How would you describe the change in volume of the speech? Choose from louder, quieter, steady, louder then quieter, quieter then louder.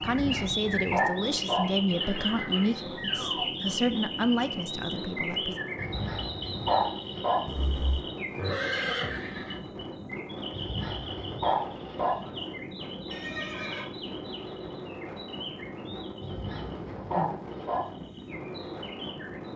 steady.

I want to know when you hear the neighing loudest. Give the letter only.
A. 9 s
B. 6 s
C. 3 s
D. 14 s
A.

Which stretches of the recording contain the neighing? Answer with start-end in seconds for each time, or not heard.
2.0-3.5, 7.5-9.6, 13.1-13.9.